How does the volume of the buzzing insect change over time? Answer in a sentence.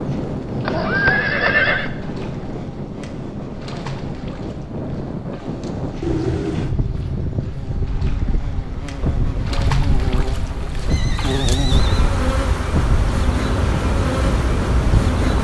The loudness of the buzzing insect goes up.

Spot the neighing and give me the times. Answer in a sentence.
The neighing can be heard from 0.7 to 1.9 s, from 6.0 to 6.8 s and from 10.8 to 12.1 s.